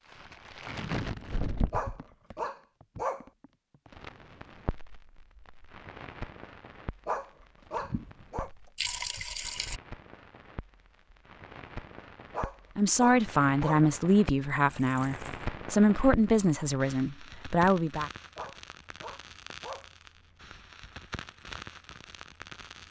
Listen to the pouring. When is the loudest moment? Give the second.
9 s.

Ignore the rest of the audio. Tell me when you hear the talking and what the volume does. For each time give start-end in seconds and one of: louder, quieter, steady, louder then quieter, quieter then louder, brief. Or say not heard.
12.8-18.1 steady.